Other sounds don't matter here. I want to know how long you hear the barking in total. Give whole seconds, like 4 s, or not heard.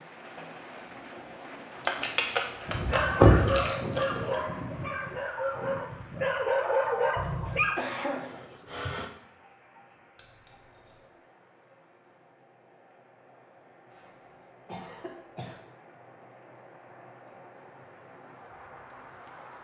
5 s.